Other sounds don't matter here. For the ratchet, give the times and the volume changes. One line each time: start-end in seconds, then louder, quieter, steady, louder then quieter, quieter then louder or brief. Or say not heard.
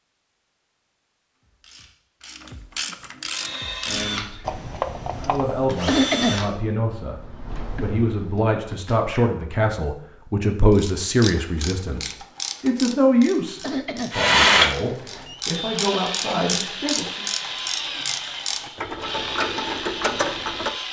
1.4-5.8 louder
10.7-20.7 quieter then louder.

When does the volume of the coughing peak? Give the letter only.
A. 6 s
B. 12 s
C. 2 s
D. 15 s
A.